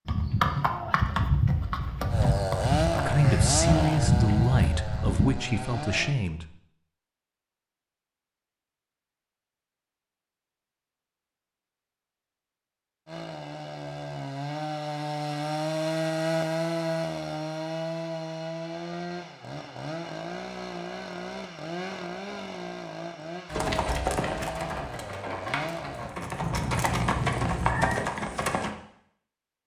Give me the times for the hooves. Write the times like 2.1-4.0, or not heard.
0.1-5.3, 23.5-28.7.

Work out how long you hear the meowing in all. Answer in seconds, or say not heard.
2 s.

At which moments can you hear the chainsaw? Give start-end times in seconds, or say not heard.
2.1-6.2, 13.1-26.1.